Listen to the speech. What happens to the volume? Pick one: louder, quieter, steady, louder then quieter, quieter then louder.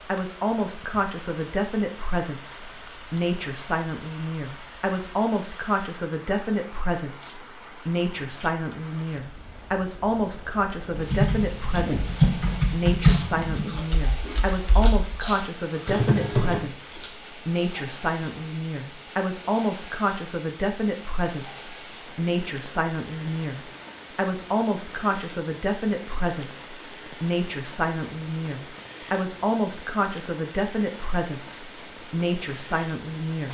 steady.